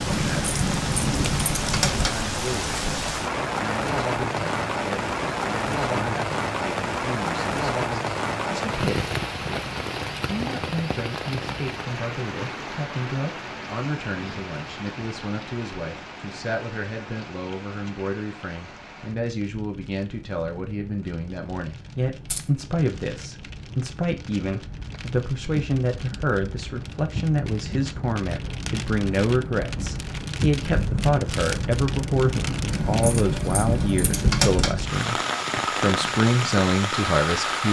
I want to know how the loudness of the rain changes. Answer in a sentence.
The volume of the rain goes down, then up.